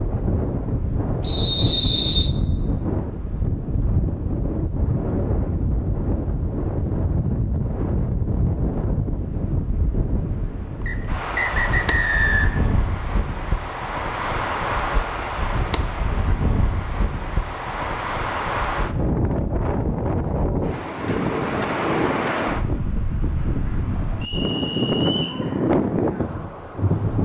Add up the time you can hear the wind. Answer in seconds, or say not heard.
27 s.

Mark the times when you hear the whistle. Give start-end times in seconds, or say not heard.
1.2-2.3, 10.8-12.7, 24.2-25.4.